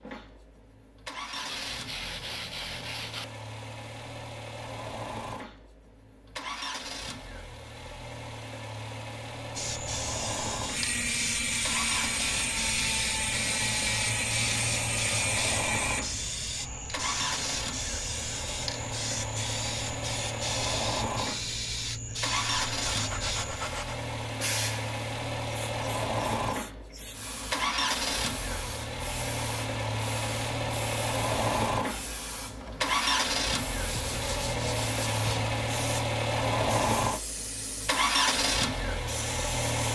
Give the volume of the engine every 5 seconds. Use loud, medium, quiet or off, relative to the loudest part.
quiet, medium, medium, medium, medium, loud, loud, loud.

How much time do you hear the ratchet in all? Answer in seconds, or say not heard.
5 s.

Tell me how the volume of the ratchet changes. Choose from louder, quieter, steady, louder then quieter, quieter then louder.
steady.